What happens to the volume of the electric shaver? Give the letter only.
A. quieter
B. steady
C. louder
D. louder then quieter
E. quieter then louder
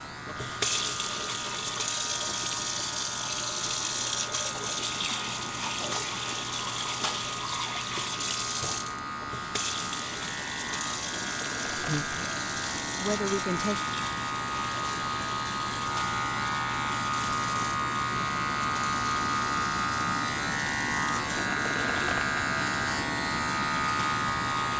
C.